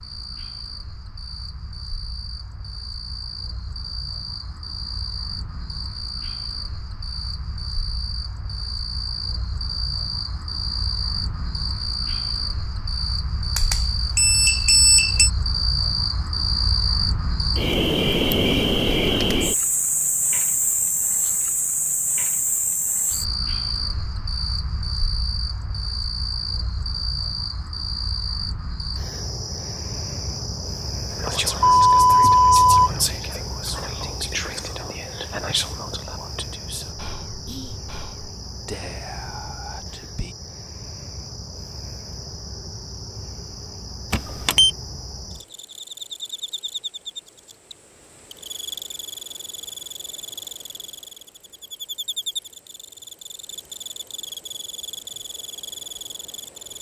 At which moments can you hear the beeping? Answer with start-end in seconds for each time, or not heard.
13.6-15.3, 31.6-33.1, 44.1-44.7.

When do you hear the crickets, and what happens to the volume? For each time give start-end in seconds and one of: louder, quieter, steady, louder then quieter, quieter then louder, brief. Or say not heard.
0.0-56.7 louder then quieter.